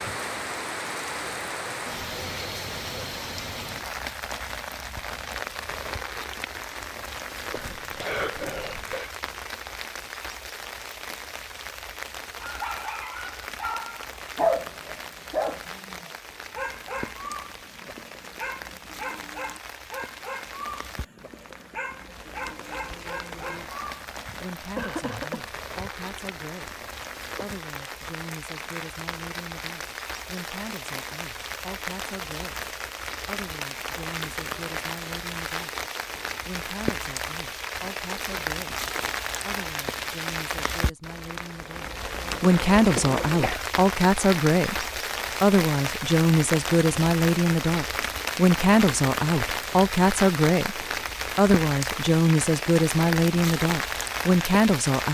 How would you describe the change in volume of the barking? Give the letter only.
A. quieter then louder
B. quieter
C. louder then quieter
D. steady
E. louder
B.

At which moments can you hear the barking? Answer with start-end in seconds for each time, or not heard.
12.4-24.6.